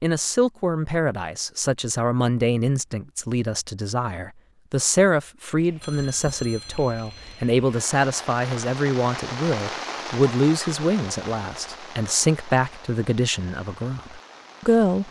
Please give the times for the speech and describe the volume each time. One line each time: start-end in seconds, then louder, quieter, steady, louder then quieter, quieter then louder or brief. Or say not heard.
0.0-15.0 steady.